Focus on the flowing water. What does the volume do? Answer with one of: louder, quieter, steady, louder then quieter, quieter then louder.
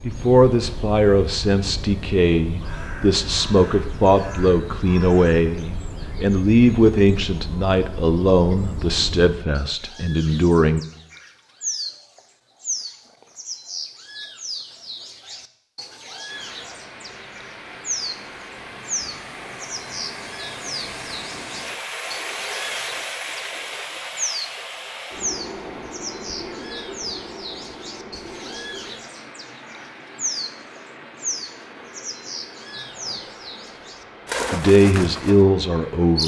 louder then quieter.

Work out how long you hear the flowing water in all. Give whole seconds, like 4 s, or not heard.
20 s.